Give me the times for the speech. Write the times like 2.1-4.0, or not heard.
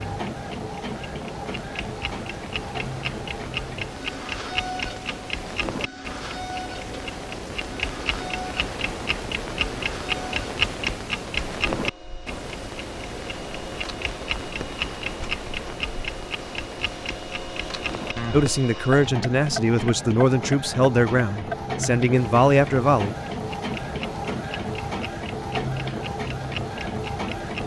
18.3-23.1.